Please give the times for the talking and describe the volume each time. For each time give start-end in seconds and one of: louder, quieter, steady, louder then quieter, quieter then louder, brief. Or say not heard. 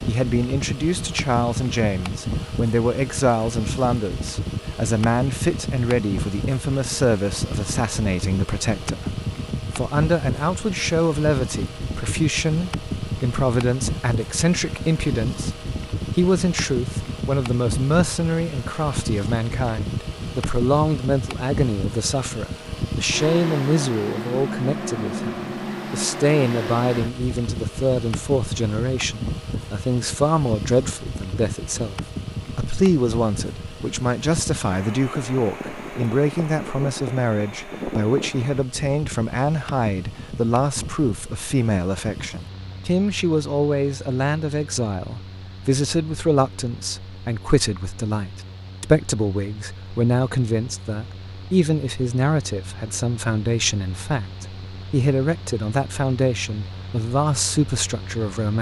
0.1-58.5 steady.